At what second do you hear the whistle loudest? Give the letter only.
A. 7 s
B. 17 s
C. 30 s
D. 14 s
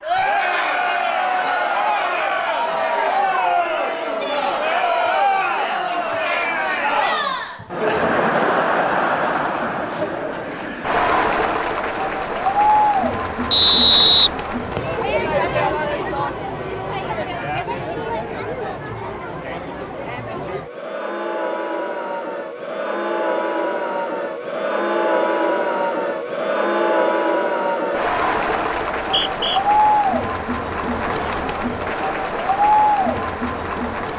D.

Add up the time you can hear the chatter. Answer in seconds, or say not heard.
34 s.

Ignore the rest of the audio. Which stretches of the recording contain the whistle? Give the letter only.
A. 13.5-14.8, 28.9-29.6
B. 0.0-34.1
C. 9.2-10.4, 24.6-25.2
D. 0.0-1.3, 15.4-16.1
A.